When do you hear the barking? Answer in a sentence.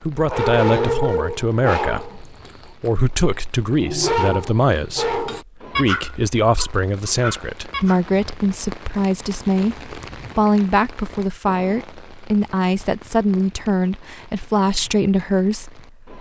The barking can be heard from 0.2 to 2.5 s and from 3.2 to 8.0 s.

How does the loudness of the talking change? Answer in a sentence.
The volume of the talking stays about the same.